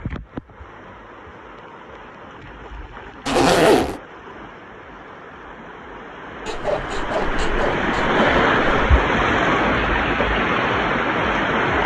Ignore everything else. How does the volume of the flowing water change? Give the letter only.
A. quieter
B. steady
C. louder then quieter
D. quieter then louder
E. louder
E.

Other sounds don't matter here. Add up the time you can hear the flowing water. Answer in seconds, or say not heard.
12 s.